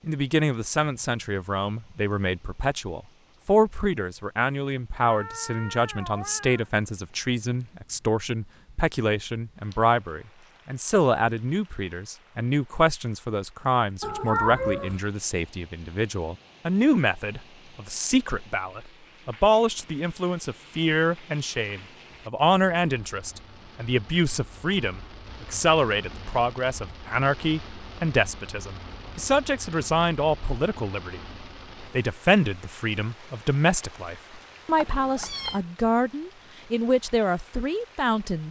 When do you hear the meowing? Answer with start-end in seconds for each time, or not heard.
5.0-6.7, 14.0-15.0, 34.8-35.6.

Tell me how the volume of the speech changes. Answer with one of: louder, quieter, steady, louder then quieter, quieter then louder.
steady.